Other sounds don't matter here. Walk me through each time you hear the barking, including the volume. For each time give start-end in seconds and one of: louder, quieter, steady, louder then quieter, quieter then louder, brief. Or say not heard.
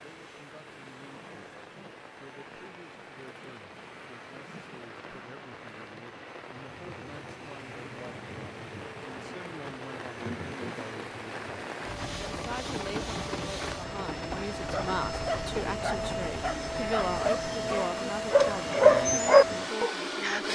14.7-20.4 louder.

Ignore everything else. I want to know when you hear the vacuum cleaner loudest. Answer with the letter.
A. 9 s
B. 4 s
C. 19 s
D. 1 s
C.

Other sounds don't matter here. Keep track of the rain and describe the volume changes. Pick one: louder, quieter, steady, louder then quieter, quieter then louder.
louder.